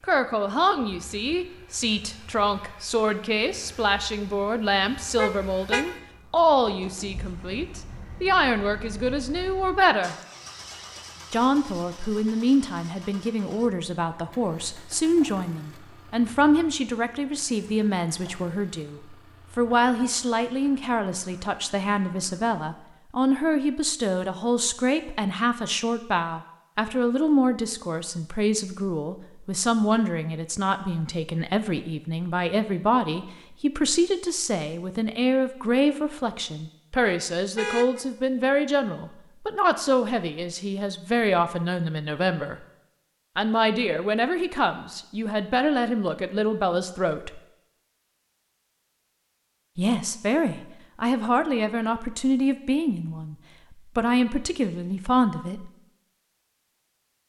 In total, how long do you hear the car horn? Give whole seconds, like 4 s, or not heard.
2 s.